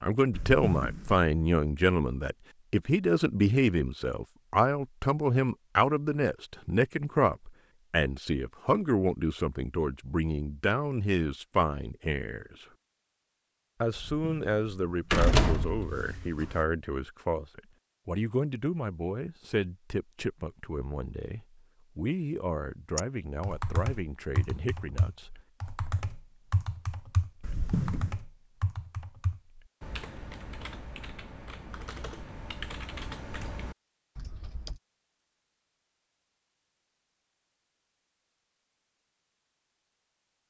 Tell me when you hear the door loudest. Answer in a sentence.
The volume of the door peaks at 15 seconds.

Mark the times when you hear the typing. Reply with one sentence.
The typing can be heard from 22.9 to 34.8 s.